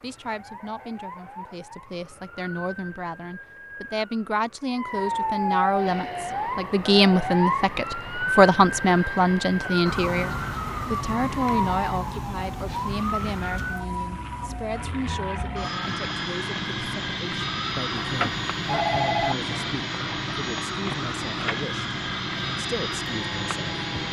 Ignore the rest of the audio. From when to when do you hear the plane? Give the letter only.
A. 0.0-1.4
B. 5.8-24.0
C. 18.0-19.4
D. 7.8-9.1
B.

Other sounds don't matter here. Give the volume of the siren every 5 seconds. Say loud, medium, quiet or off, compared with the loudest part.
quiet, loud, loud, medium, medium.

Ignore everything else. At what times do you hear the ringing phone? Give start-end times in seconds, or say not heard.
18.0-19.4.